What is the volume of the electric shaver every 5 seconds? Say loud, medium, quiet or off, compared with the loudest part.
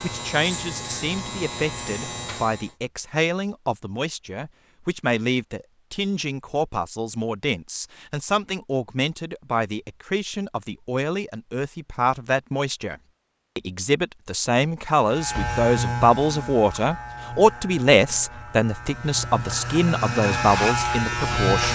medium, off, off, medium, loud.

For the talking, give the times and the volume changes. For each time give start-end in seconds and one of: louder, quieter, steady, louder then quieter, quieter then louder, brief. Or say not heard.
0.0-21.7 louder.